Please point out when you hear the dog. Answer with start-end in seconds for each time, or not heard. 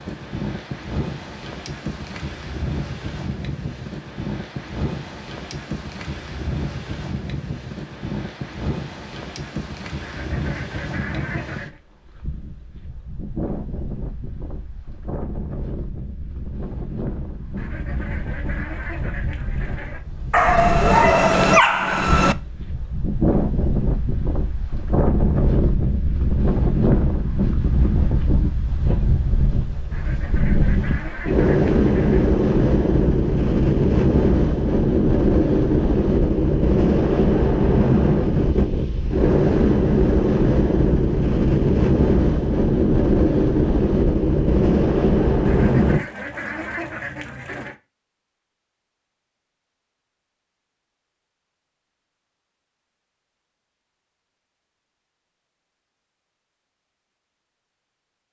20.3-22.4.